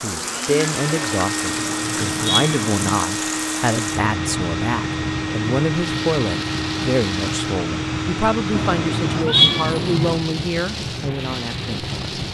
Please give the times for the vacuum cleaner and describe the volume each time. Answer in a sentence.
The vacuum cleaner can be heard from 0.0 to 9.2 s, at a steady volume.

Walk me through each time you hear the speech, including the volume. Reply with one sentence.
The speech can be heard from 0.0 to 12.2 s, at a steady volume.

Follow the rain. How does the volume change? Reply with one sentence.
The loudness of the rain stays about the same.